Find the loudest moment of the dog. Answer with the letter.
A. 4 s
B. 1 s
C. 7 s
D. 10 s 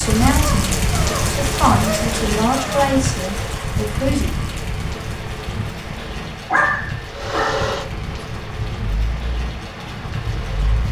C.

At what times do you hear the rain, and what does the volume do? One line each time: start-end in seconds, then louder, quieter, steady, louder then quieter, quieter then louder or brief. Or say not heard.
0.0-10.8 quieter.